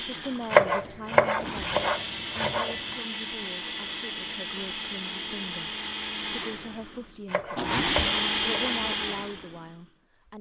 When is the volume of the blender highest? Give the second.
8 s.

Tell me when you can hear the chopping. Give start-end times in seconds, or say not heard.
0.5-3.0, 7.2-8.8.